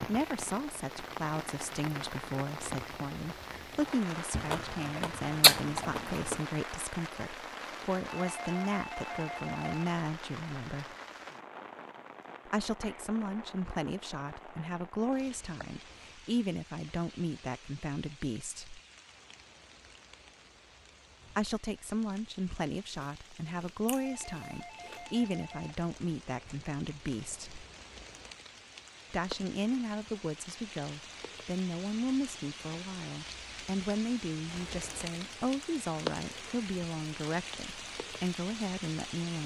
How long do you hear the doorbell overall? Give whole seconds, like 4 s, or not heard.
4 s.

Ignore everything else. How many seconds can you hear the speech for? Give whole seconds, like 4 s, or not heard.
34 s.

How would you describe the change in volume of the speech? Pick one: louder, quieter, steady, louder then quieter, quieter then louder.
steady.